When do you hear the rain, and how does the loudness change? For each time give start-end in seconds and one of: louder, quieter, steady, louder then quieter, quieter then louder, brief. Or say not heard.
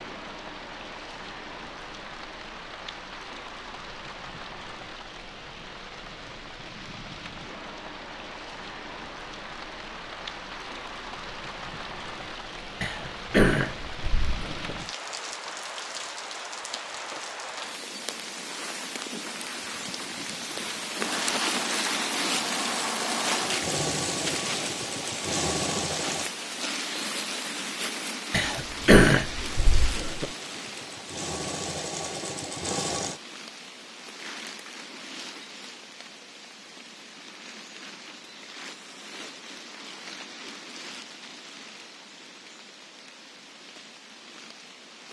0.0-45.0 louder then quieter.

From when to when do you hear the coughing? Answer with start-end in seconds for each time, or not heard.
12.8-14.7, 28.3-30.3.